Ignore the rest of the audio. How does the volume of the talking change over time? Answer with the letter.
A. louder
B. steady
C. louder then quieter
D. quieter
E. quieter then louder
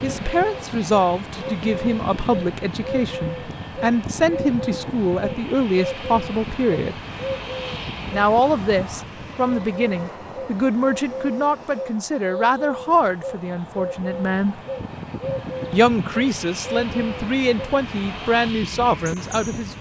B.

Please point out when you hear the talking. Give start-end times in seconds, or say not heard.
0.0-7.0, 8.1-14.6, 15.7-19.7.